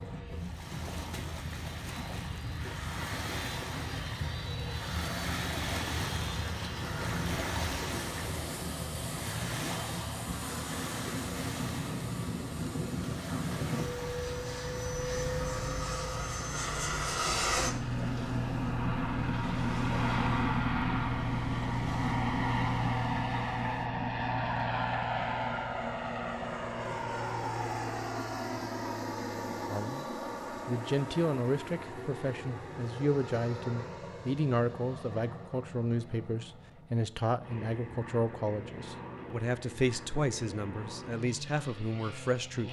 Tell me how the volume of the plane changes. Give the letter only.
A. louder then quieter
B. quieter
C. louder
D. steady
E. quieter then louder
A.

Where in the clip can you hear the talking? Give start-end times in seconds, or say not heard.
29.6-30.1, 30.6-42.6.